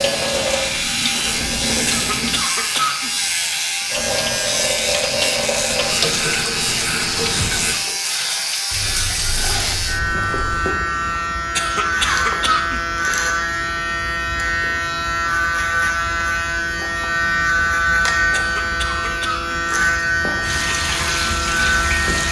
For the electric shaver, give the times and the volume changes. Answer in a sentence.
You can hear the electric shaver from 0.0 to 22.2 s, at a steady volume.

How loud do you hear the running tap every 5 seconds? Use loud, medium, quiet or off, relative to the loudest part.
loud, loud, off, off, loud.